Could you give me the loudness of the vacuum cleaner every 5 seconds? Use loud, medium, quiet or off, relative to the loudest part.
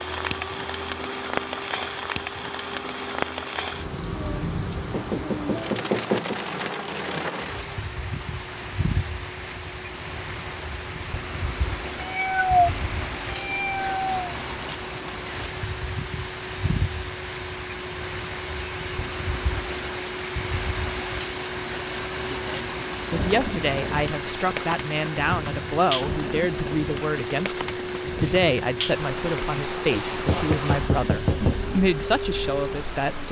medium, medium, medium, loud, loud, loud, loud.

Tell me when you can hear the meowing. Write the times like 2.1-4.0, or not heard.
11.9-14.2.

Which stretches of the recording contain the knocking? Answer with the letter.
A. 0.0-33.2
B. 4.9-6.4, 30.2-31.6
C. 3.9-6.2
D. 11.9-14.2
B.